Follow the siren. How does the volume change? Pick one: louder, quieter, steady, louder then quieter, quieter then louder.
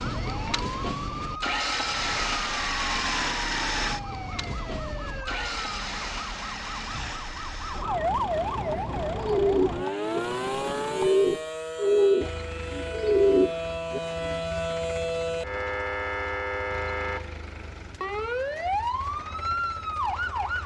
louder.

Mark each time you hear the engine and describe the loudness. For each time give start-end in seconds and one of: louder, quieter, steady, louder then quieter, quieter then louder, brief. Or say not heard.
0.0-20.6 quieter.